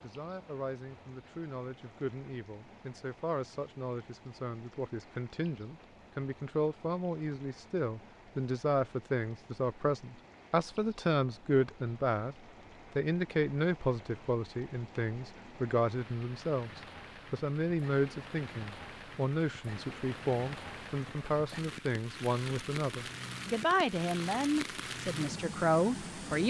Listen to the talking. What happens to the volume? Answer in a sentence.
The volume of the talking goes up.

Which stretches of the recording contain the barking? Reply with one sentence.
The barking can't be heard in this clip.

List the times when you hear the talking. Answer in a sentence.
You can hear the talking from 0.0 to 12.3 s and from 12.9 to 26.4 s.